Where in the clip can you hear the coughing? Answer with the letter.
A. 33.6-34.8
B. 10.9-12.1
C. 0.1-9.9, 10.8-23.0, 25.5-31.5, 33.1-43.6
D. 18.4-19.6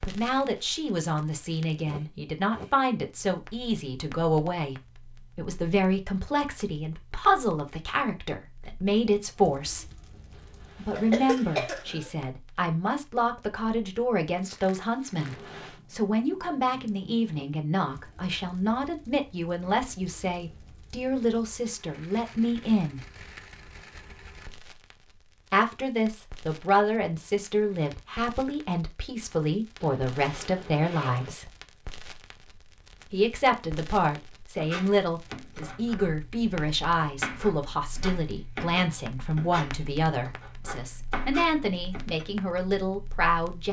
B.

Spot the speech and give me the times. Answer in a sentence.
You can hear the speech from 0.1 to 9.9 s, from 10.8 to 23.0 s, from 25.5 to 31.5 s and from 33.1 to 43.6 s.